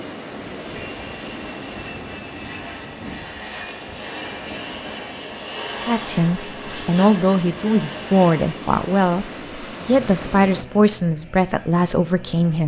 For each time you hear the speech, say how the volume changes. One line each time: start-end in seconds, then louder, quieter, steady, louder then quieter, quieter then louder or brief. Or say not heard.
5.8-12.6 steady.